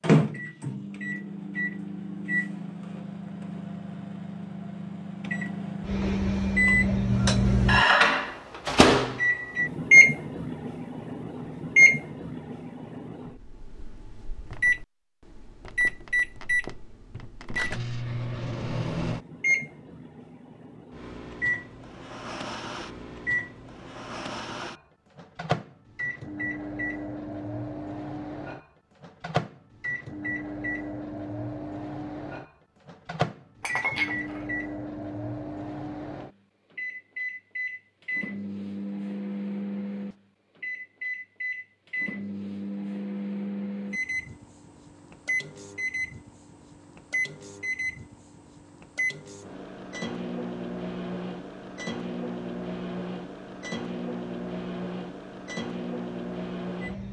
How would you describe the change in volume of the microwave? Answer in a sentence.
The loudness of the microwave goes down.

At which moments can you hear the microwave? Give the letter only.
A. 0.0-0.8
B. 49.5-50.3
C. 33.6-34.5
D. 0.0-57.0
D.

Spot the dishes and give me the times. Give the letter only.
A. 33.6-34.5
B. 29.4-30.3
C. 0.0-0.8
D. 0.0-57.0
A.